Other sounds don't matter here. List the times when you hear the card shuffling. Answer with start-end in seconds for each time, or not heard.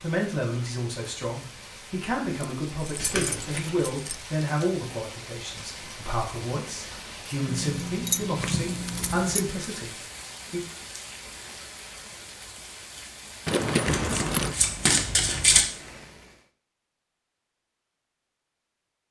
3.0-3.9, 8.4-9.2, 13.8-15.7.